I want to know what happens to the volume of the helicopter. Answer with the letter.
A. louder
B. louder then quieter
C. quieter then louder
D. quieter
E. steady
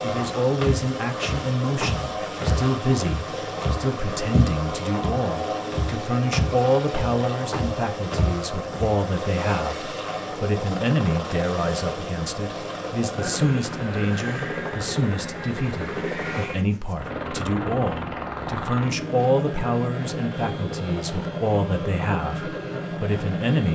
E.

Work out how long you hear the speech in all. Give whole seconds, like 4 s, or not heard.
24 s.